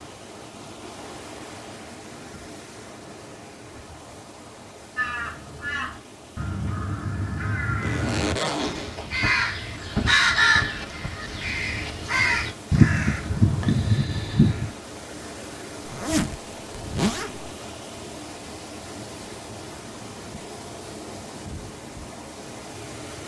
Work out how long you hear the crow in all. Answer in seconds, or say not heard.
10 s.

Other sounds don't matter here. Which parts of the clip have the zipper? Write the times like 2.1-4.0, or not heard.
7.8-9.0, 15.8-17.5.